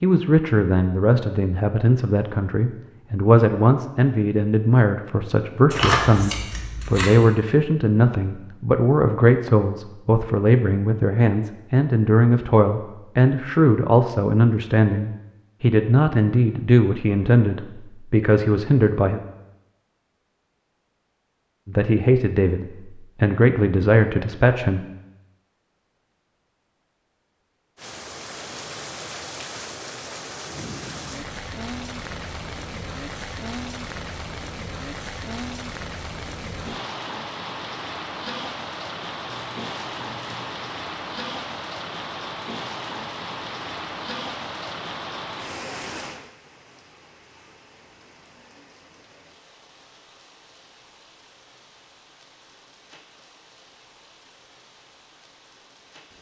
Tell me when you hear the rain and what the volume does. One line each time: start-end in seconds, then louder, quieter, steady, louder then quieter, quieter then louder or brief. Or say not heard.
27.8-56.1 quieter.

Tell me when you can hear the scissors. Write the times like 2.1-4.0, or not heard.
5.7-7.2, 39.2-40.5.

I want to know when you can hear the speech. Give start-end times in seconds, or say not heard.
0.0-19.2, 21.6-24.9.